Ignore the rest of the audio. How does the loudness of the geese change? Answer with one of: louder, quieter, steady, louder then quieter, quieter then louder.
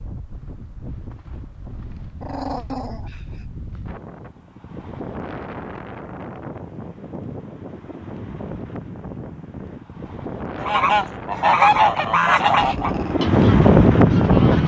quieter.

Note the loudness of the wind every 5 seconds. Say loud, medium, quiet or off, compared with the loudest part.
quiet, quiet, loud.